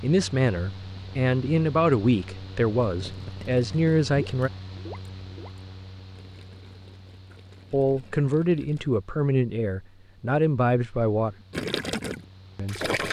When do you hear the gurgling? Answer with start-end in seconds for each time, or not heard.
2.9-8.9, 11.5-13.0.